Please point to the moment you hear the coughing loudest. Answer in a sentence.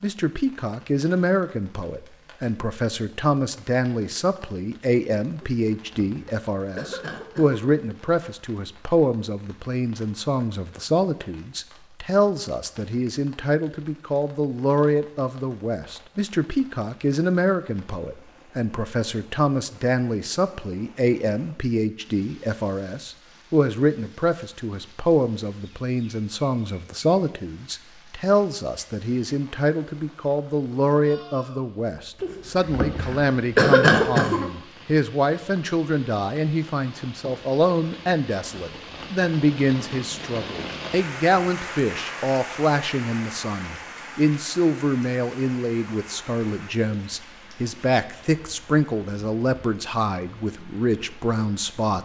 The loudest moment of the coughing is at 34 seconds.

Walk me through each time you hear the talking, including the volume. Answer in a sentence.
The talking can be heard from 0.0 to 52.0 s, at a steady volume.